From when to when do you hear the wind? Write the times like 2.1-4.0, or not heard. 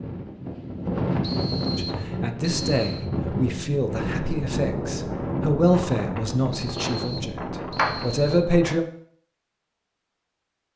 0.0-8.8.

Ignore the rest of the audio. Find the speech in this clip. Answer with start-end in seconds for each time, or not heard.
1.8-8.8.